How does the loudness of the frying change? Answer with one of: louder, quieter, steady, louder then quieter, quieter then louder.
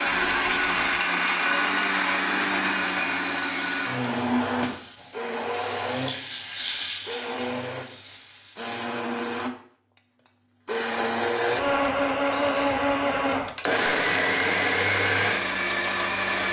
louder then quieter.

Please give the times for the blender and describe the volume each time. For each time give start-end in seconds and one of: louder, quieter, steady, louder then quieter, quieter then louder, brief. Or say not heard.
0.0-16.4 quieter then louder.